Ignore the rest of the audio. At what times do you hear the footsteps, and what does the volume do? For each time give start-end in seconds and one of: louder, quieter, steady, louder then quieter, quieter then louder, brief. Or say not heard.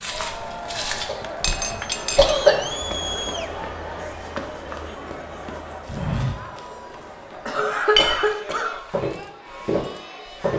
0.0-10.5 quieter then louder.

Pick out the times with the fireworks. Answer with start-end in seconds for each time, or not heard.
not heard.